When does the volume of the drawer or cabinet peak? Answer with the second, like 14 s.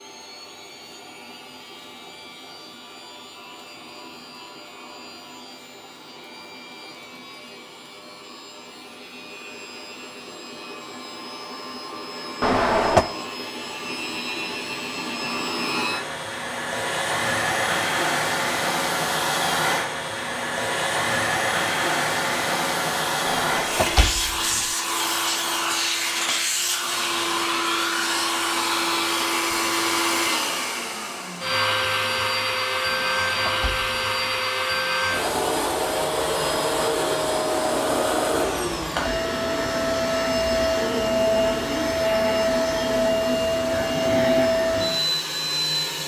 13 s.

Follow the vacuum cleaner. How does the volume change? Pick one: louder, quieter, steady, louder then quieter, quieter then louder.
louder.